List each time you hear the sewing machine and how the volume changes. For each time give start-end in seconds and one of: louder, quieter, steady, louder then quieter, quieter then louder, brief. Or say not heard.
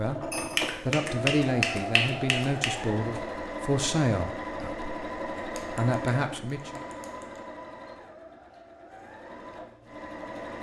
0.0-10.5 quieter.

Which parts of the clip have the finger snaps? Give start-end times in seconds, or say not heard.
0.3-2.8, 5.3-7.4.